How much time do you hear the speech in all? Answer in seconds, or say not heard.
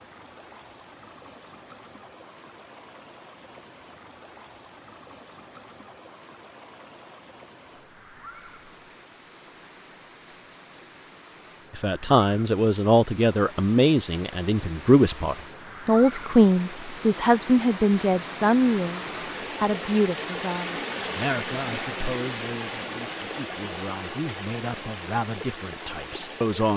15 s.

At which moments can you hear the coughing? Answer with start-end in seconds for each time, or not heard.
not heard.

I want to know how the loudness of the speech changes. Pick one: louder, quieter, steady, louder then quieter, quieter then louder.
quieter.